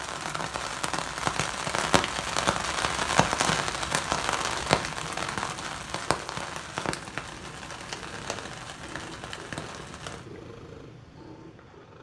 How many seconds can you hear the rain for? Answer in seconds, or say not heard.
10 s.